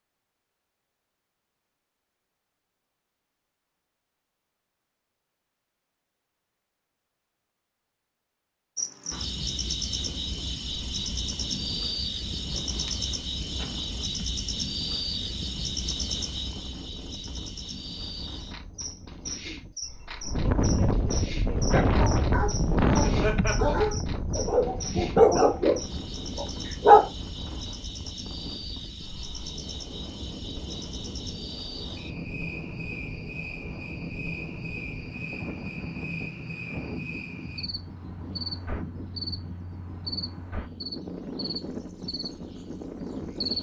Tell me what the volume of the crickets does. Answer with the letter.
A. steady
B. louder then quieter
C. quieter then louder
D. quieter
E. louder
D.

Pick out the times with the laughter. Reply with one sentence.
The laughter can be heard from 12.8 to 13.7 s and from 22.9 to 23.8 s.